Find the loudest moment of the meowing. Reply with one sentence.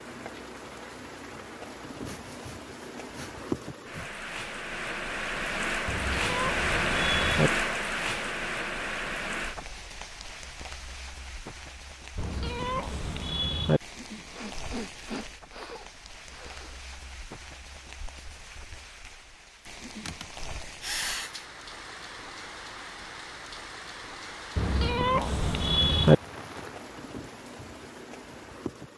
The loudest moment of the meowing is at 26 seconds.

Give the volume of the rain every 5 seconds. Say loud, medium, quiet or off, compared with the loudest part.
medium, loud, quiet, quiet, quiet, quiet.